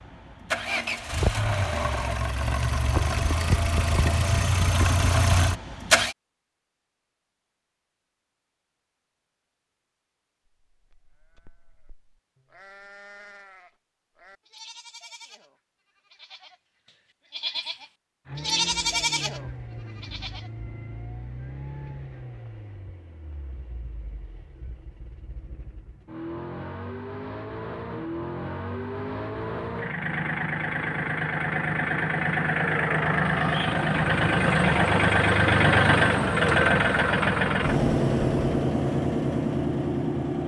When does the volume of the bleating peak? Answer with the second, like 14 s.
19 s.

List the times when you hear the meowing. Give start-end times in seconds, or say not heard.
not heard.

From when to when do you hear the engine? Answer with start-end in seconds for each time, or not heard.
0.0-6.2, 18.2-40.4.